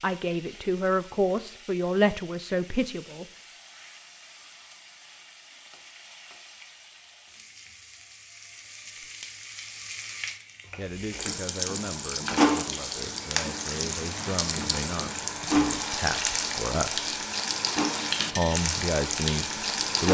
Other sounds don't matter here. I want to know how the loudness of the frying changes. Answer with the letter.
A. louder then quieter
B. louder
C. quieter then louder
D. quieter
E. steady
B.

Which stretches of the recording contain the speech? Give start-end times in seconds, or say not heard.
0.0-3.2, 10.8-17.1, 18.3-20.0.